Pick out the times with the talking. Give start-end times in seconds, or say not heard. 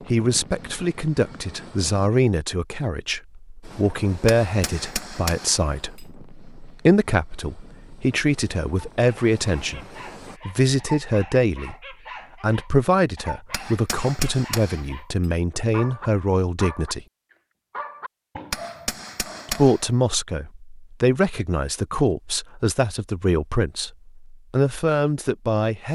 0.1-9.8, 10.4-11.8, 12.4-17.1, 19.4-25.9.